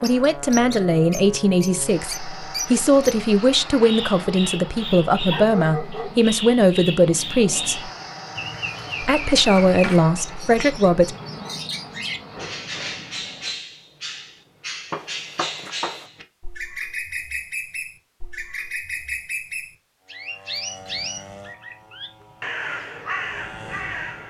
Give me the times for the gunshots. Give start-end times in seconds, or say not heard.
14.9-16.1.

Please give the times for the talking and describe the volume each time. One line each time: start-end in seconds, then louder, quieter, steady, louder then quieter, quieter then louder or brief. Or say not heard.
0.0-7.9 steady
9.0-11.2 brief.